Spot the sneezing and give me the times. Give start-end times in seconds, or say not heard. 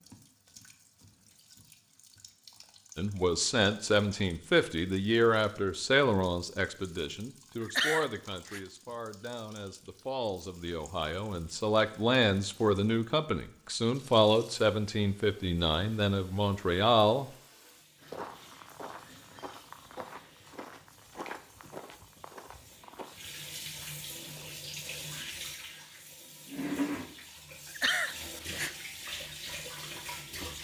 7.6-8.6, 27.8-28.8.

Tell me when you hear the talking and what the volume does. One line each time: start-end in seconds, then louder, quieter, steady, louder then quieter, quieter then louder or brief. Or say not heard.
3.0-17.3 quieter then louder.